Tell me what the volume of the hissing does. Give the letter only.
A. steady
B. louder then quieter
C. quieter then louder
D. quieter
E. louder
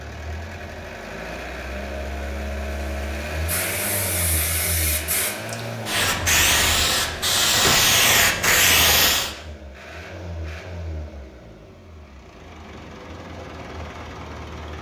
E.